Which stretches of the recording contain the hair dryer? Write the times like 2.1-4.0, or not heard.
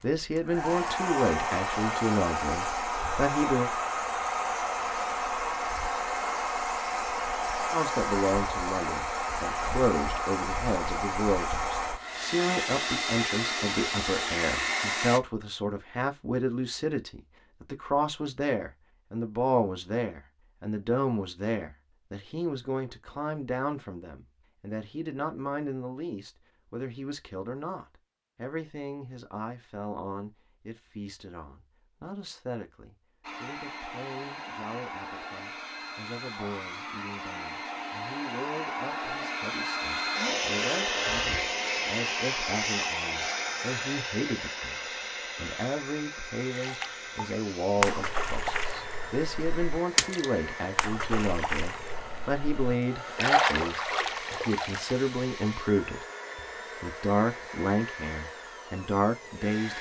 0.0-15.2, 33.2-59.7.